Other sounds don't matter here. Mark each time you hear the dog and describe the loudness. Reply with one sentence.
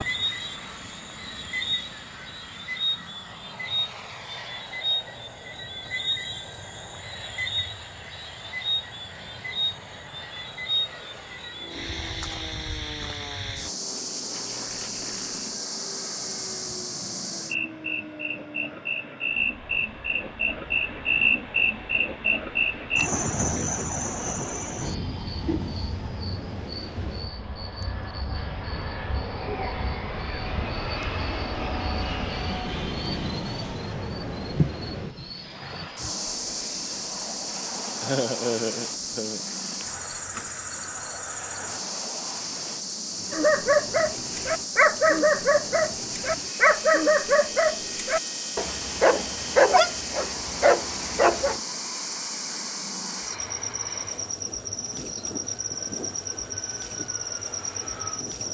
The dog can be heard from 43.3 to 51.6 s, at a steady volume.